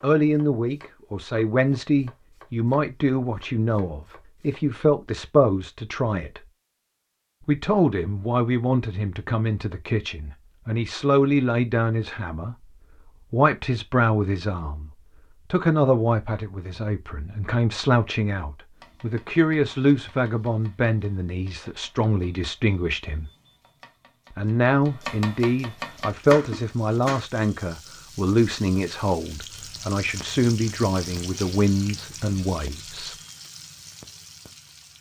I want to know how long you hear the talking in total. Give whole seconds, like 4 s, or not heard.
31 s.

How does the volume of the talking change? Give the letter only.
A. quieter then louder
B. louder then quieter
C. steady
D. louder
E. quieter
C.